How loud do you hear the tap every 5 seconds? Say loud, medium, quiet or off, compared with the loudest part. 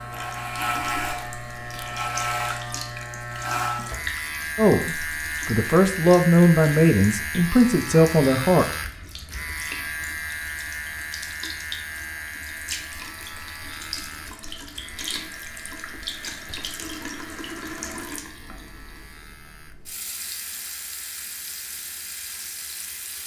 loud, medium, loud, loud, loud.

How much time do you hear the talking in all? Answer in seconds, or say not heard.
4 s.